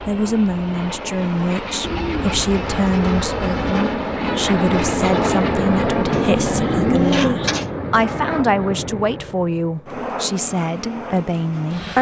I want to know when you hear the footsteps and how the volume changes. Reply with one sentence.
The footsteps can't be heard in this clip.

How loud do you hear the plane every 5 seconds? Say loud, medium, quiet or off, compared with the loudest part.
loud, loud, medium.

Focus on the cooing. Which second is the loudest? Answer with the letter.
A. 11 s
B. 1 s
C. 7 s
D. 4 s
C.